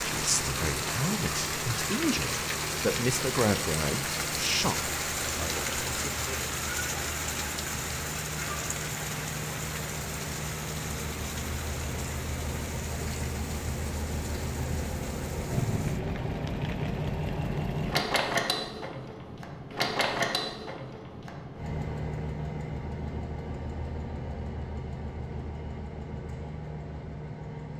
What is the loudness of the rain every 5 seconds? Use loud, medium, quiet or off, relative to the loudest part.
loud, loud, medium, quiet, off, off.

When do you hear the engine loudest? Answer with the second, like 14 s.
18 s.